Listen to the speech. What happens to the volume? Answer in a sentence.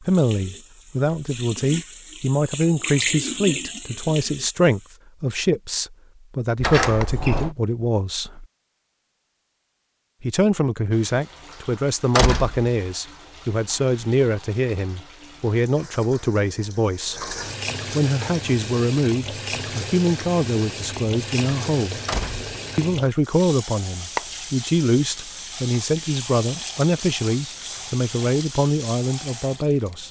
The volume of the speech stays about the same.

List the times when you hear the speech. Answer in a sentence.
You can hear the speech from 0.0 to 8.4 s, from 10.2 to 17.3 s, from 17.9 to 22.0 s and from 22.8 to 30.0 s.